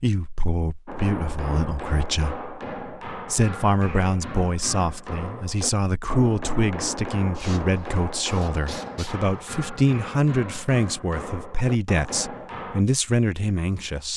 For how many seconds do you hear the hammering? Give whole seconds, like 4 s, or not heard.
12 s.